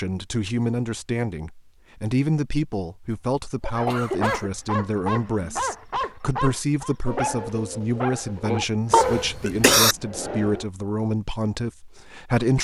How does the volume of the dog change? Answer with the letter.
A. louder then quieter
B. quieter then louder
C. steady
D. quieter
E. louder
C.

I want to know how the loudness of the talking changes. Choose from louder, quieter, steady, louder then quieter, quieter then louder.
steady.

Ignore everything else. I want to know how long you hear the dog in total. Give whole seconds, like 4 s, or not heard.
7 s.